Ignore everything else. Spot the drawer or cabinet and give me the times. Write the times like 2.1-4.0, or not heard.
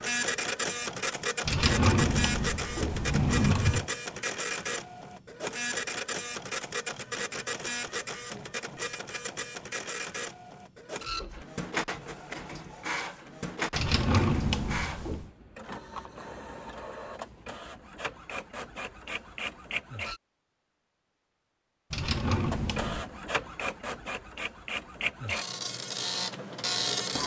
1.4-3.9, 13.7-15.3, 21.9-23.1.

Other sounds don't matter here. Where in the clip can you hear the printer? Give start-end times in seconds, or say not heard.
0.0-20.2, 22.5-27.2.